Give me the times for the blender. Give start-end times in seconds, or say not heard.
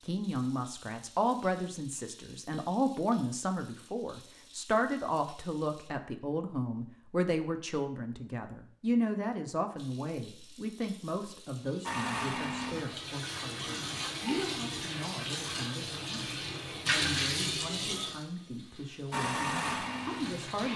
11.8-14.1, 19.1-20.7.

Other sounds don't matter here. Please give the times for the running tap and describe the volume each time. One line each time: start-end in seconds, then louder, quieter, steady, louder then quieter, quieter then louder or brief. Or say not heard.
0.0-5.9 steady
9.8-20.7 louder then quieter.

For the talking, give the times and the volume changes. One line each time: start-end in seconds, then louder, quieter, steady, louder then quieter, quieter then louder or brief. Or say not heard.
0.0-20.7 quieter.